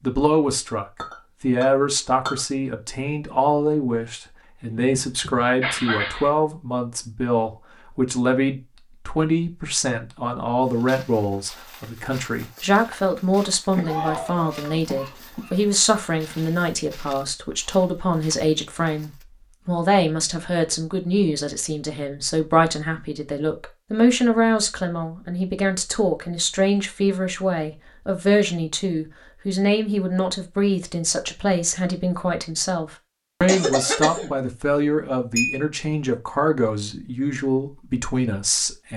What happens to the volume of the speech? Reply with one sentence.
The volume of the speech stays about the same.